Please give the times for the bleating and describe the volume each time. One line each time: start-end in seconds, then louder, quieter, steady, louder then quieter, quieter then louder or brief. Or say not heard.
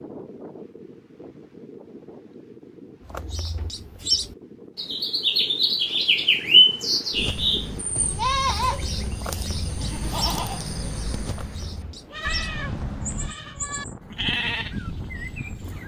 7.2-15.8 quieter then louder.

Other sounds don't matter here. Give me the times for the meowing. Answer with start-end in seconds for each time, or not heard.
12.2-13.3.